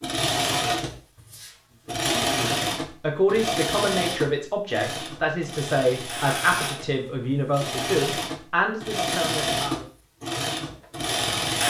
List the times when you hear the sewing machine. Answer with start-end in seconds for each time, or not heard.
0.0-11.6.